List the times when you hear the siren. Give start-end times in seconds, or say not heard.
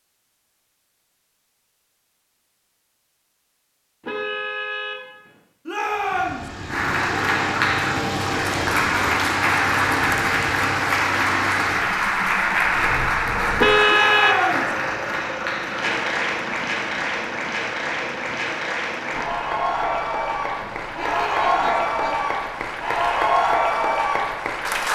not heard.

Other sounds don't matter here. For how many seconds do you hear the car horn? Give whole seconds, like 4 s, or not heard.
4 s.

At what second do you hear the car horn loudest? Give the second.
14 s.